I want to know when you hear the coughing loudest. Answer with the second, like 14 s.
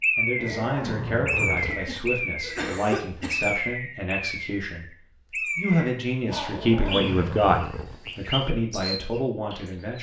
3 s.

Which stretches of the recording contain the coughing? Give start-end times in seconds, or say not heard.
1.6-3.5.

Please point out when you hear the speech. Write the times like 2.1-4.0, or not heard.
0.1-4.8, 5.5-9.9.